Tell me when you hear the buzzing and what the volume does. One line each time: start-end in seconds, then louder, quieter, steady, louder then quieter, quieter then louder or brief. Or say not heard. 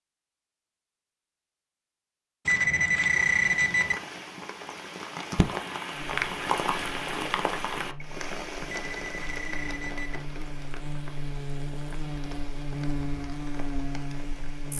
5.9-14.7 louder.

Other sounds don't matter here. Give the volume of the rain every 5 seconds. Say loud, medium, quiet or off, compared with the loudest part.
medium, loud, quiet.